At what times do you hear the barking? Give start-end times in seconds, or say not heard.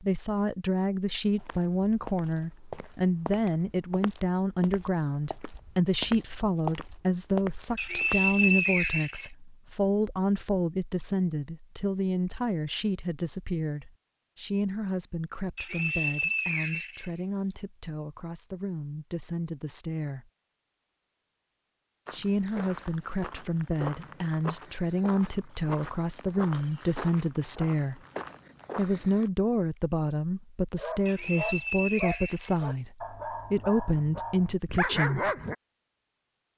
30.8-35.5.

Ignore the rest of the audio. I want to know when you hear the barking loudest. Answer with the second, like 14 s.
35 s.